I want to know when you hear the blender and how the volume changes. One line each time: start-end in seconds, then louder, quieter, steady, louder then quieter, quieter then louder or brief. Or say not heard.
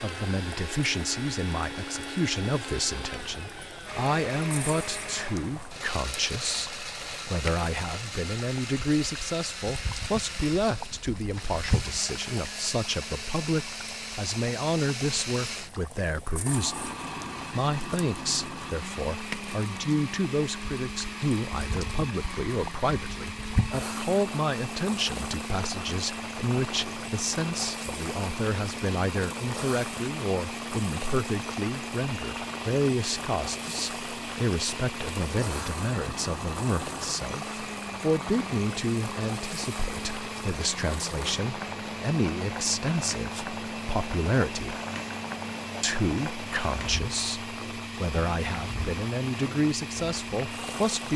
0.0-51.1 steady.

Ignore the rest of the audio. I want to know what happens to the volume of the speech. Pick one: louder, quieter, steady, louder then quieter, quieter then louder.
steady.